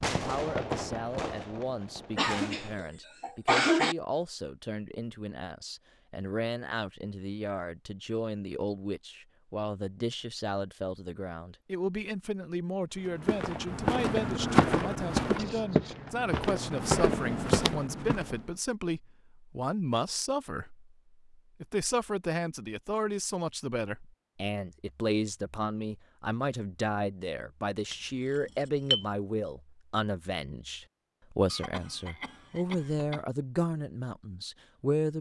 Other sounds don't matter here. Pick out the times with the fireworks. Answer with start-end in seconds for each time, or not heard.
0.0-2.8.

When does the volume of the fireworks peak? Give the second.
1 s.